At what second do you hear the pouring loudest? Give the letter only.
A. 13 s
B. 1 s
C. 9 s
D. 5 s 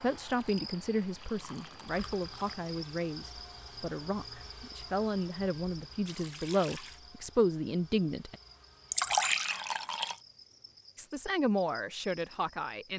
C.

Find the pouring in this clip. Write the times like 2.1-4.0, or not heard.
0.3-2.6, 6.0-7.0, 8.9-10.2.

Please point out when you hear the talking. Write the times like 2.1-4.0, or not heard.
0.0-8.3, 10.9-12.9.